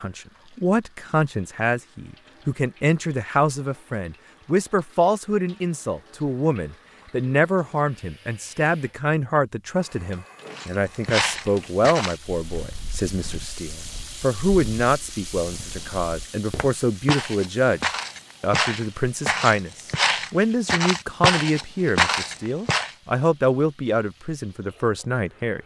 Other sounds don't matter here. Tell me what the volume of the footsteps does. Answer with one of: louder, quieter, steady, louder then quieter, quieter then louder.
quieter then louder.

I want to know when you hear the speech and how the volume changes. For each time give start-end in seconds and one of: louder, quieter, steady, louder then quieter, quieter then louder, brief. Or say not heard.
0.0-25.6 steady.